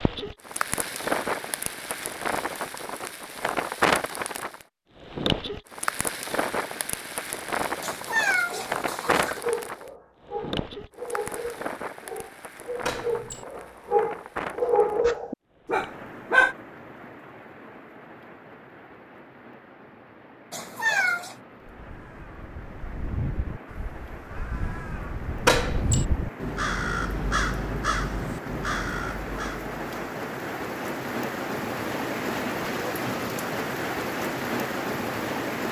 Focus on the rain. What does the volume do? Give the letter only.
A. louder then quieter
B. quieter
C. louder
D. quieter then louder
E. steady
D.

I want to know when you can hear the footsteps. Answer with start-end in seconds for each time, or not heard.
not heard.